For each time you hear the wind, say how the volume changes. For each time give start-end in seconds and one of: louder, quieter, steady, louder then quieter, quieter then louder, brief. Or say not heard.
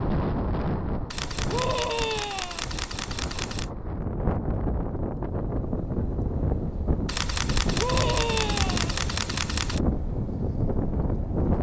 0.0-11.5 steady.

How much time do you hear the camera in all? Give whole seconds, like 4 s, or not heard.
5 s.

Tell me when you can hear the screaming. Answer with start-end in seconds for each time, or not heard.
1.5-2.6, 7.8-8.9.